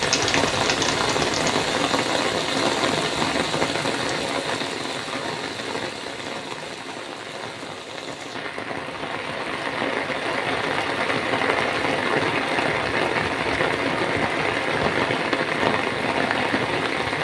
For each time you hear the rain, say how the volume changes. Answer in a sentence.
The rain can be heard from 0.0 to 17.1 s, getting quieter then louder.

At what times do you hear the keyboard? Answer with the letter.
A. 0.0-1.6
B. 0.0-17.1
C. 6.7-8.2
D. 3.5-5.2
A.